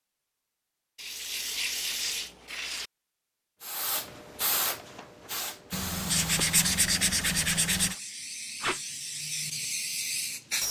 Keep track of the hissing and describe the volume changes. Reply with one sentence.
The volume of the hissing goes down, then up.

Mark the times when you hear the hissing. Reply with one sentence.
The hissing can be heard from 3.6 to 10.6 s.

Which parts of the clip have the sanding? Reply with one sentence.
You can hear the sanding from 0.9 to 2.9 s and from 5.7 to 8.0 s.